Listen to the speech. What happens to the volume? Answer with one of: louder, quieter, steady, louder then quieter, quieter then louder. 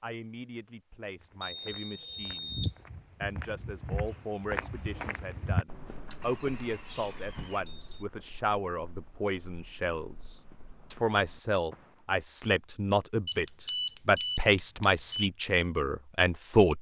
louder.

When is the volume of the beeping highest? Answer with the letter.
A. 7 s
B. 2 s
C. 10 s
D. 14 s
D.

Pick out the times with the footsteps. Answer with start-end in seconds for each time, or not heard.
1.2-12.0.